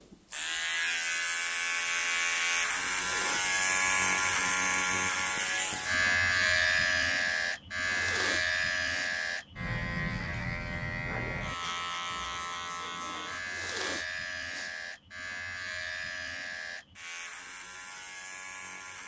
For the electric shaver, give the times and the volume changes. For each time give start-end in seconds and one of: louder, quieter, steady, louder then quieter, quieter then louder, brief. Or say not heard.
0.0-19.0 quieter.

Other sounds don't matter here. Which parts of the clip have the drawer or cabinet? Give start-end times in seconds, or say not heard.
not heard.